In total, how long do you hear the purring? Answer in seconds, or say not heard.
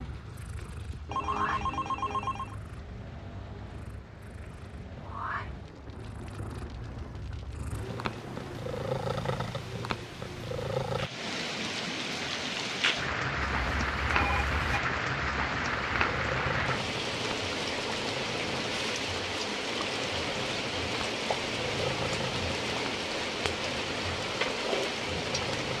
21 s.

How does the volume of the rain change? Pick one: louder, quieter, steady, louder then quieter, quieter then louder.
louder.